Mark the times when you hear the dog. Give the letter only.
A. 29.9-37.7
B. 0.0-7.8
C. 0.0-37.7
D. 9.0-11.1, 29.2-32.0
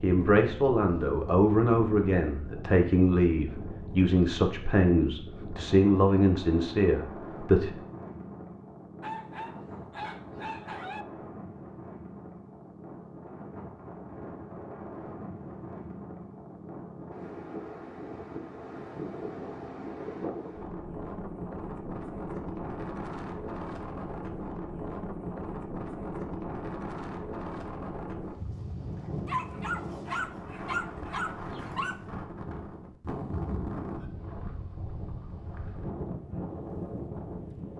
D.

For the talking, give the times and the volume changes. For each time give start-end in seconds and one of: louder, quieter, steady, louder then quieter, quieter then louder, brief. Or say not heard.
0.0-7.8 steady.